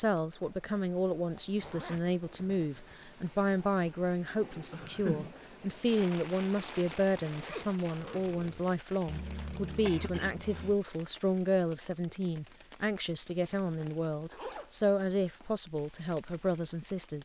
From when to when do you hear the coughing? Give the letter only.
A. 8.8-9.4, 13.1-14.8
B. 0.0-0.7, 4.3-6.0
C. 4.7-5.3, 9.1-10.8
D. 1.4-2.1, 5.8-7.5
C.